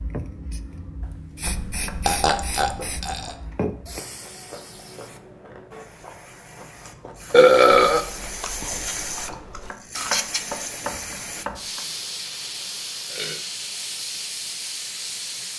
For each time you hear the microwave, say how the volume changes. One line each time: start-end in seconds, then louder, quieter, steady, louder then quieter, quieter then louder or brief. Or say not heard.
not heard.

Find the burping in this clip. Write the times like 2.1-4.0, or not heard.
1.4-3.4, 7.3-8.1, 11.8-13.3.